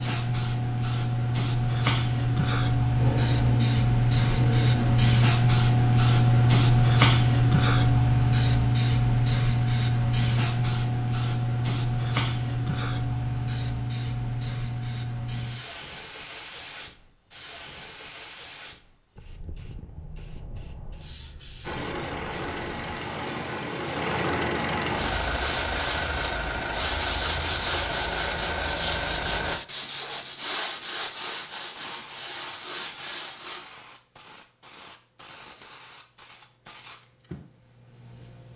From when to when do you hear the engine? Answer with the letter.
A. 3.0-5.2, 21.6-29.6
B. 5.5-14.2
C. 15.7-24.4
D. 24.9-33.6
A.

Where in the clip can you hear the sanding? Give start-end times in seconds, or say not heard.
24.9-33.6.